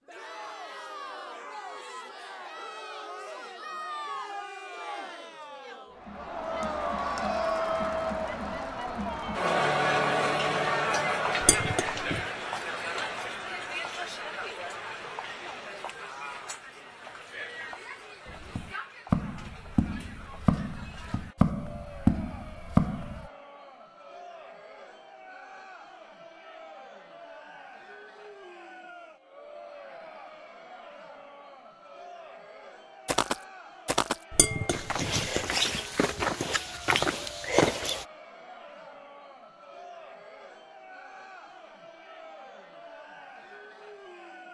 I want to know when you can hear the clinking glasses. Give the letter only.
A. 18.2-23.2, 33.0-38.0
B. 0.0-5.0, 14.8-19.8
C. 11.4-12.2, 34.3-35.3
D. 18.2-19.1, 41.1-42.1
C.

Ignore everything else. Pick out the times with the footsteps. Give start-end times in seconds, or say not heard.
18.2-23.2, 33.0-38.0.